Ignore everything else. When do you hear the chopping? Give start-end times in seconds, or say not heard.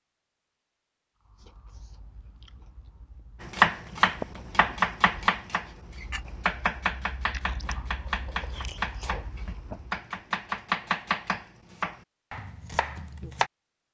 3.4-13.5.